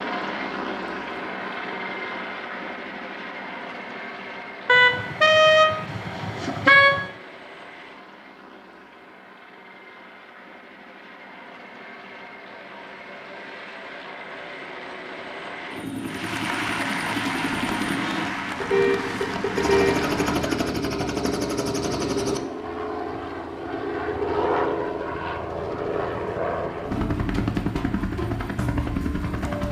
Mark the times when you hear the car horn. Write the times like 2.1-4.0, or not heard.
4.7-7.0, 18.6-20.1.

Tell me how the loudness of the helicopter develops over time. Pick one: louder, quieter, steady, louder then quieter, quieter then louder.
quieter then louder.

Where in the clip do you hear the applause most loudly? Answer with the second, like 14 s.
17 s.